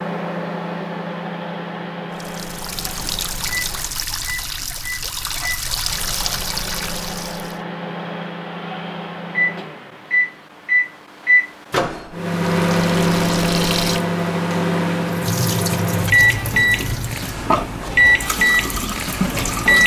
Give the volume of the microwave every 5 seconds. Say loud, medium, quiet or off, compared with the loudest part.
medium, medium, loud, loud.